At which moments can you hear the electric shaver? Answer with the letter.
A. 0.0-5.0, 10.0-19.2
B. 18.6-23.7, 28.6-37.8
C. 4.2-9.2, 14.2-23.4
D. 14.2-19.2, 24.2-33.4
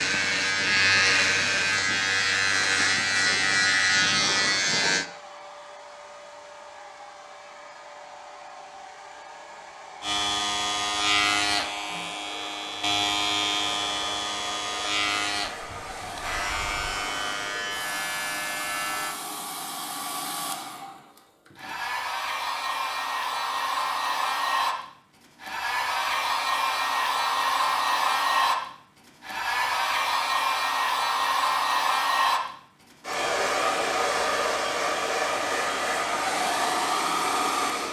A.